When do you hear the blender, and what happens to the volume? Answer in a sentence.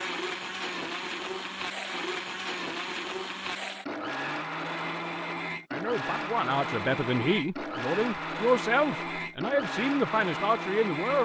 The blender can be heard from 0.0 to 11.1 s, at a steady volume.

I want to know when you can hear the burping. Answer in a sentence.
The burping can't be heard in this clip.